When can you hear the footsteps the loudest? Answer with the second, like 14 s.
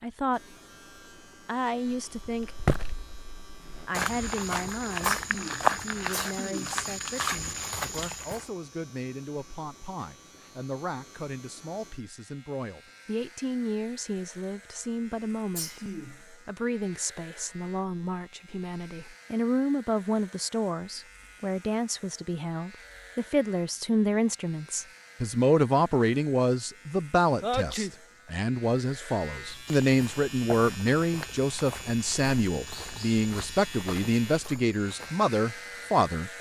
6 s.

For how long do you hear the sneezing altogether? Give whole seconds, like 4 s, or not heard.
3 s.